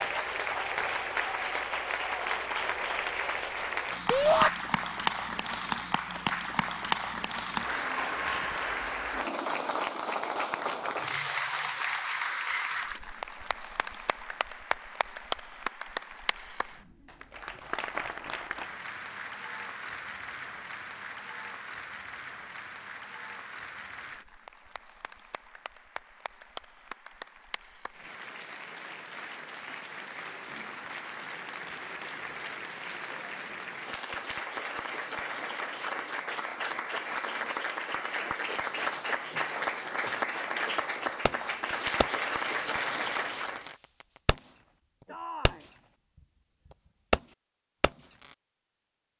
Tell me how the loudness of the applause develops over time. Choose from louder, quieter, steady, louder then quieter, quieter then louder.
quieter then louder.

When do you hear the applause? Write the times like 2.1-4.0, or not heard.
0.0-43.8.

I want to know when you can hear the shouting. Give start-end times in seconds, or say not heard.
4.1-4.5, 45.0-45.7.